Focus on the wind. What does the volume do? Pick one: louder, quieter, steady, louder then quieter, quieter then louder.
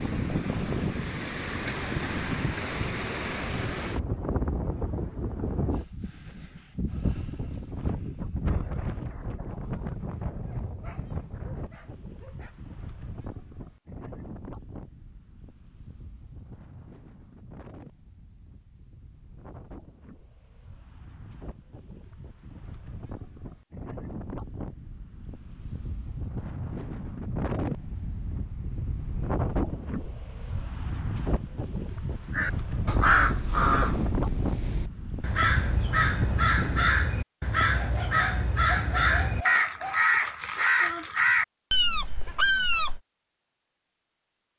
quieter then louder.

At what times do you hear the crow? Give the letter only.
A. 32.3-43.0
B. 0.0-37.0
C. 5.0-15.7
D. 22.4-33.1
A.